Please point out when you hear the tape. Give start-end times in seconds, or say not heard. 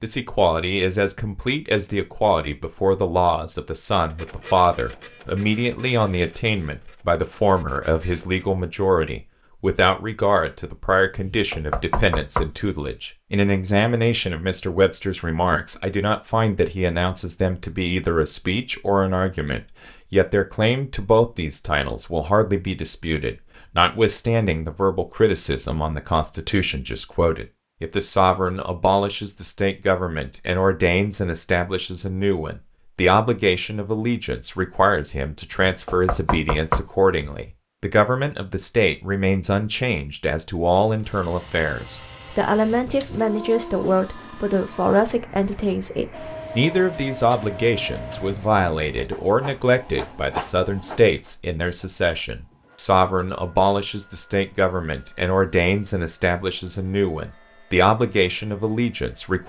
not heard.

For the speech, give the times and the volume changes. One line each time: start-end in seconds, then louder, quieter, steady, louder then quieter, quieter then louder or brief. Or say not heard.
0.0-59.4 steady.